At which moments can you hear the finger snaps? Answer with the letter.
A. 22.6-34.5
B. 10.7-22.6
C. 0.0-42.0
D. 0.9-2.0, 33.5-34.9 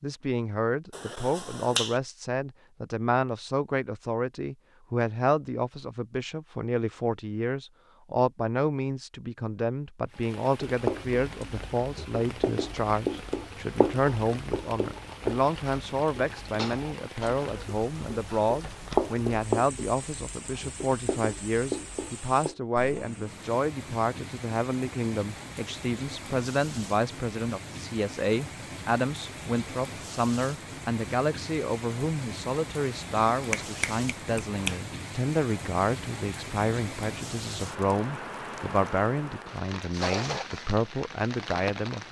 D.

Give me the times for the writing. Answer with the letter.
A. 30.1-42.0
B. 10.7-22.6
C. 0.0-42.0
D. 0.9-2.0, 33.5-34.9
B.